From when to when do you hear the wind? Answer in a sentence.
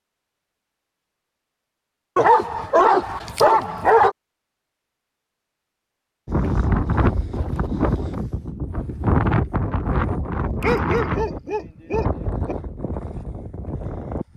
You can hear the wind from 6.2 to 14.3 s.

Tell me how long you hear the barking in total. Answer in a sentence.
You can hear the barking for 4 seconds altogether.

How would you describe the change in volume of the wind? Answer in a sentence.
The loudness of the wind goes down.